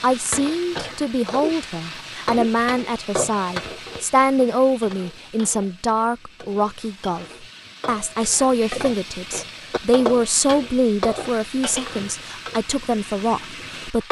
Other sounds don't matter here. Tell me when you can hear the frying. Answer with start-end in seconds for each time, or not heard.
0.0-14.0.